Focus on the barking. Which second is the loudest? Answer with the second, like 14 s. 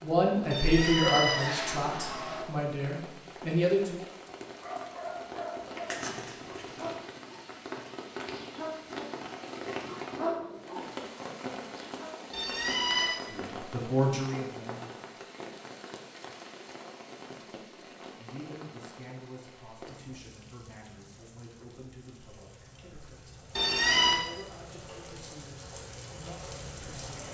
10 s.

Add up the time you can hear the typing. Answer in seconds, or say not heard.
not heard.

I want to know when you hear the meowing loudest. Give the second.
24 s.